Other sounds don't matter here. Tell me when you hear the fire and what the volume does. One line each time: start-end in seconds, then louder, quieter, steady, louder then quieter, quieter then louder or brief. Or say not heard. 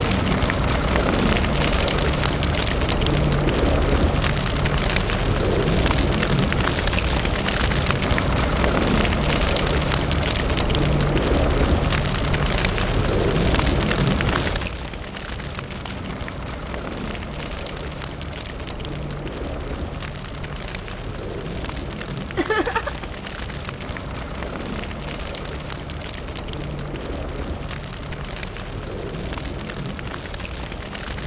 0.0-31.2 quieter.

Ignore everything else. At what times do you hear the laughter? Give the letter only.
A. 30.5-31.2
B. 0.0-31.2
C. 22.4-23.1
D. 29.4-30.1
C.